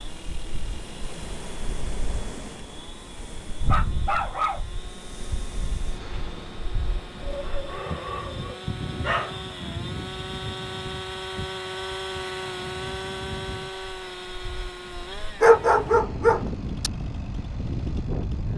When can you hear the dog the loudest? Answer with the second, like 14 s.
16 s.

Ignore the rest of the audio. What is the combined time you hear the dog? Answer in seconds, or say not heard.
5 s.